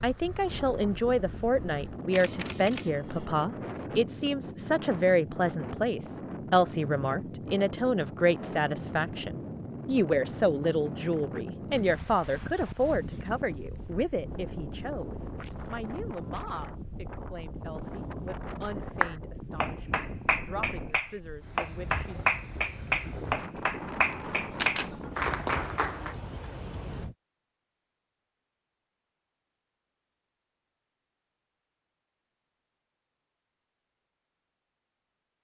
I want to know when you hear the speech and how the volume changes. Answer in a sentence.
You can hear the speech from 0.0 to 22.2 s, getting quieter.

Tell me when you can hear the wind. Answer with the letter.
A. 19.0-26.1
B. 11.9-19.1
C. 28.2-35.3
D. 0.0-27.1
D.